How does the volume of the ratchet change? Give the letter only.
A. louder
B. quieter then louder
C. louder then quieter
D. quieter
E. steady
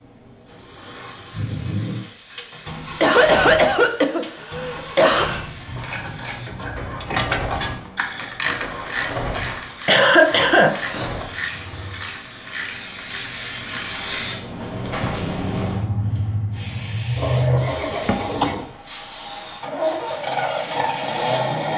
D.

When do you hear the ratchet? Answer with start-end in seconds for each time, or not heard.
5.7-14.0.